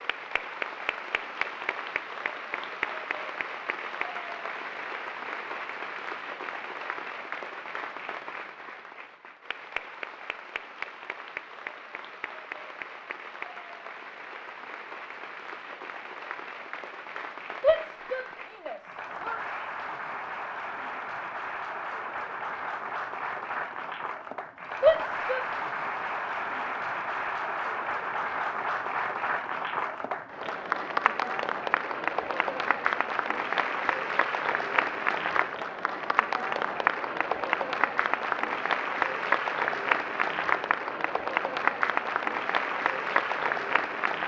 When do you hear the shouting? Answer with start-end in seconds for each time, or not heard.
17.6-19.4, 24.8-25.4.